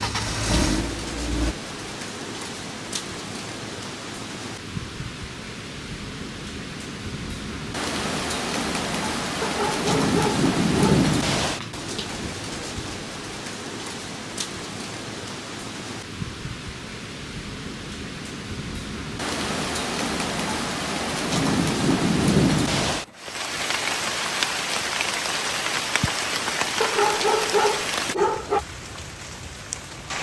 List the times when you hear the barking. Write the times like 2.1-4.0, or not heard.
9.4-11.1, 26.8-28.6.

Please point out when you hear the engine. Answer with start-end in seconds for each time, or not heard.
0.0-1.6.